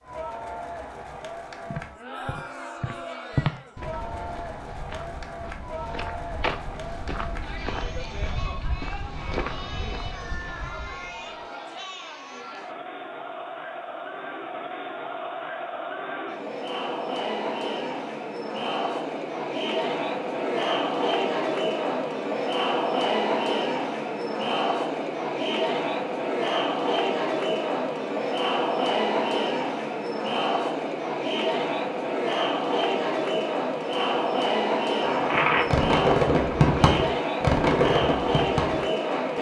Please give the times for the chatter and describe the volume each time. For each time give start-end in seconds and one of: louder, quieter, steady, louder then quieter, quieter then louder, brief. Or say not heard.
0.0-39.3 louder.